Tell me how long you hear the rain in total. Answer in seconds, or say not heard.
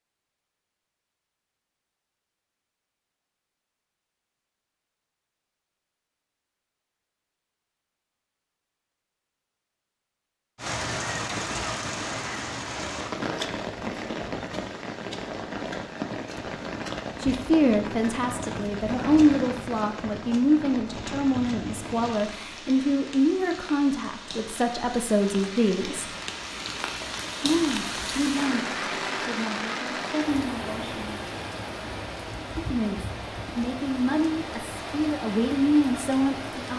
26 s.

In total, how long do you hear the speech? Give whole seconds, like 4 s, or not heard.
17 s.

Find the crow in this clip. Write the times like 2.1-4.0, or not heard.
not heard.